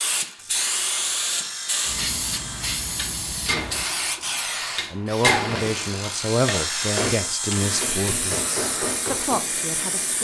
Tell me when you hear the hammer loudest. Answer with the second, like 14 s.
5 s.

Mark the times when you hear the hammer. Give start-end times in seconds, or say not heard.
3.0-9.4.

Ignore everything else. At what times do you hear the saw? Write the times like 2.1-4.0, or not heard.
0.3-2.8, 5.7-8.1.